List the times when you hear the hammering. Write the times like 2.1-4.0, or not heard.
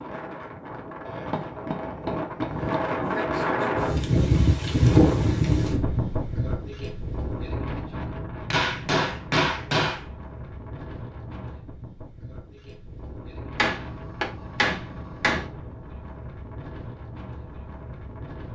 1.1-2.9, 8.5-10.1, 13.6-15.4.